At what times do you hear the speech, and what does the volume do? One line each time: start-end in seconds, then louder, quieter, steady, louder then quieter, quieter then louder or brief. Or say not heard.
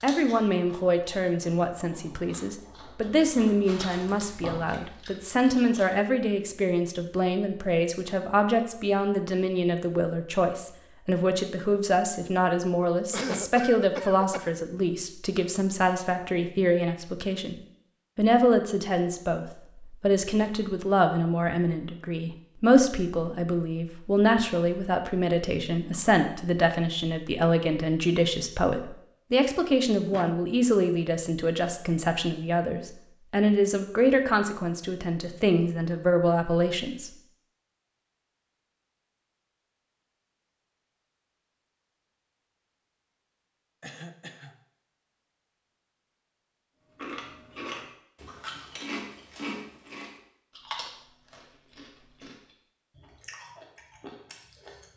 0.0-17.6 steady
18.1-37.1 steady.